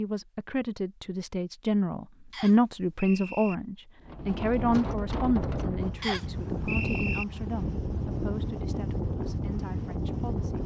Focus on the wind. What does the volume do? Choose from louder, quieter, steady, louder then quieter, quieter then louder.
steady.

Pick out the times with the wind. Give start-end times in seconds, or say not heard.
4.0-10.6.